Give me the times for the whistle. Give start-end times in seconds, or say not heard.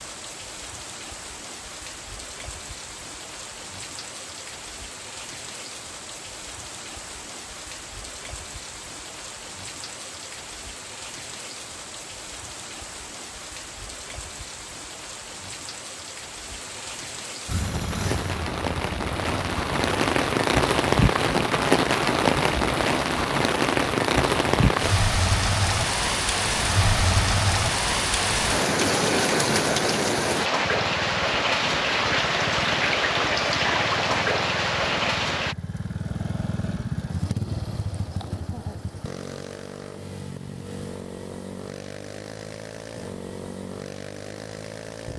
not heard.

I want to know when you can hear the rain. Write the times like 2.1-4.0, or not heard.
0.0-35.5.